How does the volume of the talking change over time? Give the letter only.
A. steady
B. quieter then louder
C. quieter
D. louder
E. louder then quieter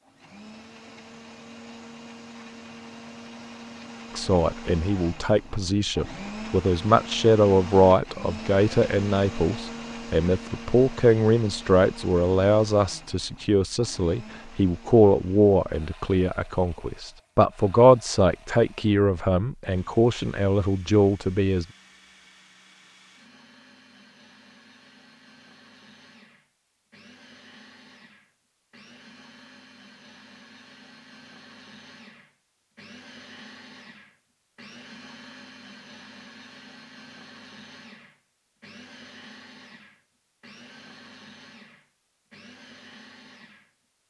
A.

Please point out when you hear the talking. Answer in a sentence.
You can hear the talking from 4.2 to 21.6 s.